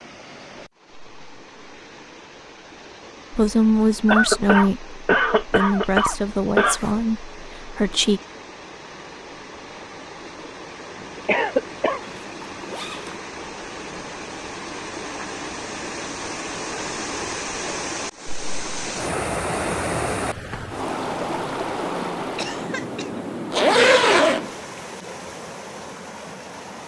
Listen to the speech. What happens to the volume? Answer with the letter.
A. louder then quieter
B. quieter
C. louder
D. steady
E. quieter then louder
B.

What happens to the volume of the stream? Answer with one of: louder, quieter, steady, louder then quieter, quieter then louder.
louder.